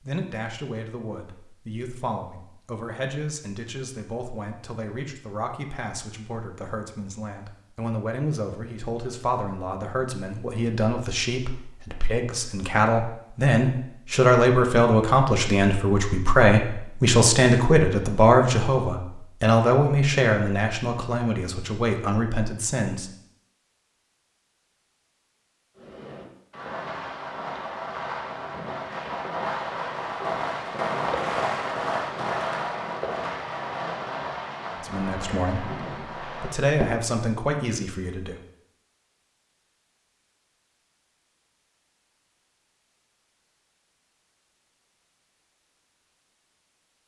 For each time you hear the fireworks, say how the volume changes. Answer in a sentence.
The fireworks can be heard from 25.8 to 37.1 s, getting louder then quieter.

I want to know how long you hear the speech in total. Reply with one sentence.
The speech can be heard for 27 seconds in total.